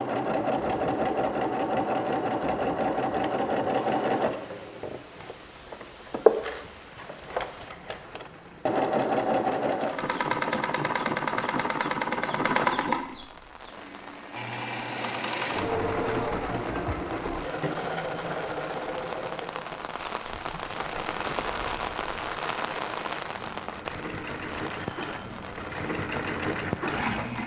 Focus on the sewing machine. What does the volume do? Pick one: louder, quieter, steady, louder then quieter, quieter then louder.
quieter.